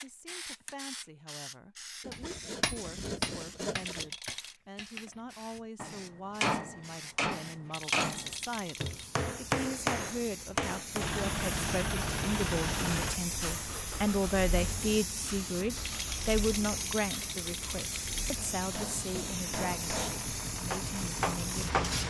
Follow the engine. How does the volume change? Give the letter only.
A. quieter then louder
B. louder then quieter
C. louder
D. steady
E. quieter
A.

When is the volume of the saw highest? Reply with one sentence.
The volume of the saw peaks at 4 seconds.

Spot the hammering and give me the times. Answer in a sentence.
The hammering can be heard from 2.1 to 11.2 s and from 18.4 to 22.0 s.